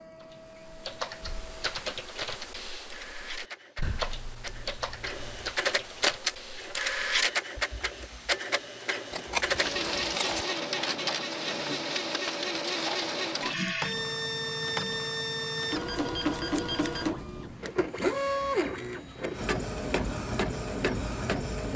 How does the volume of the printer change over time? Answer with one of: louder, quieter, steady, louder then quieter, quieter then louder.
louder.